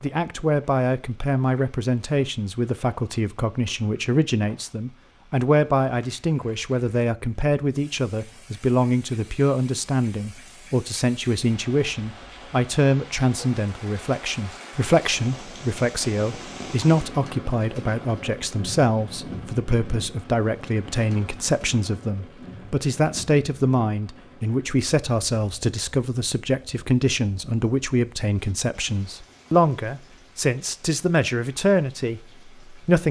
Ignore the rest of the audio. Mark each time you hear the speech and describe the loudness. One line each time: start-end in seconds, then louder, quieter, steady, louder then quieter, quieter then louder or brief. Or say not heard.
0.0-33.0 steady.